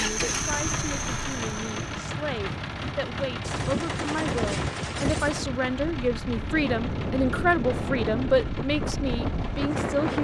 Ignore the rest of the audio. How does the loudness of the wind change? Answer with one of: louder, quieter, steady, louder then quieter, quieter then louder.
louder.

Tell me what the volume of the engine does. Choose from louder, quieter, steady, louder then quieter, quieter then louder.
quieter.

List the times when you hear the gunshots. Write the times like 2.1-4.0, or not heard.
3.4-5.5.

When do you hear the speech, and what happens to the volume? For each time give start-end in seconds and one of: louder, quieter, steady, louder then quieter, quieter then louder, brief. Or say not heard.
0.0-10.2 louder.